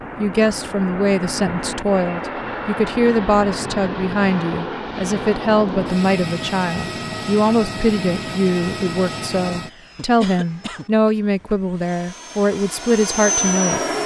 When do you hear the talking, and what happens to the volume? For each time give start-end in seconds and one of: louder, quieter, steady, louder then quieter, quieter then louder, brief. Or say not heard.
0.1-13.8 steady.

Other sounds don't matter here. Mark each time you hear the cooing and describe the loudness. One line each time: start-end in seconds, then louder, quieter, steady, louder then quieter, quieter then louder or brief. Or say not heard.
not heard.